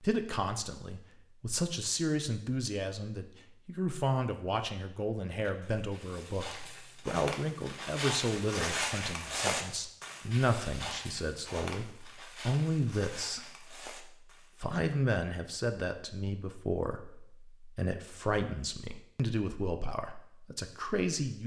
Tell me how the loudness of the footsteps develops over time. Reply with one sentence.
The volume of the footsteps goes up, then down.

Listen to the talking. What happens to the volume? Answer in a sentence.
The volume of the talking stays about the same.